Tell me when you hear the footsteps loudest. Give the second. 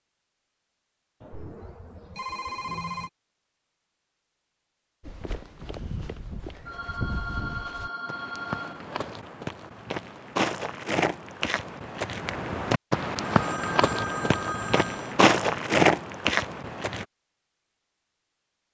16 s.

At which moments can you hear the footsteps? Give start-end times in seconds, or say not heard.
5.0-17.1.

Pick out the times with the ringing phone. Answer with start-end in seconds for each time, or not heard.
1.2-3.1, 6.7-8.9, 13.3-15.2.